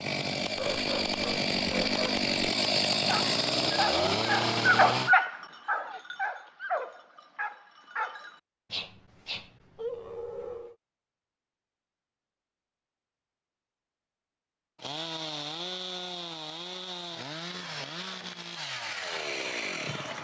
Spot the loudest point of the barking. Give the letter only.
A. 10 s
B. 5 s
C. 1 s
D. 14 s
B.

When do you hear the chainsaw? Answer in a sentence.
You can hear the chainsaw from 0.0 to 5.2 s and from 14.8 to 20.1 s.